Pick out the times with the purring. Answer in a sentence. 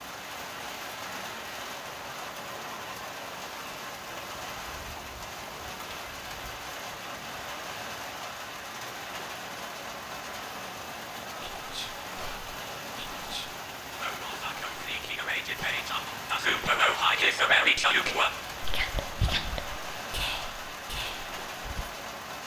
You can't hear the purring here.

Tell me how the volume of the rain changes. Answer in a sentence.
The volume of the rain stays about the same.